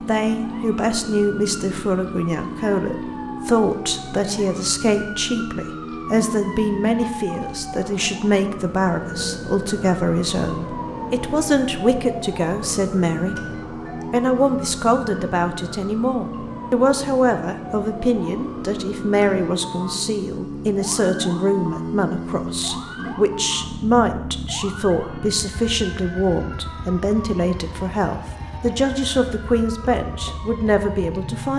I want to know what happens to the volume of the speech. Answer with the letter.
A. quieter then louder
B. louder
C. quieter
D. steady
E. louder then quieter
D.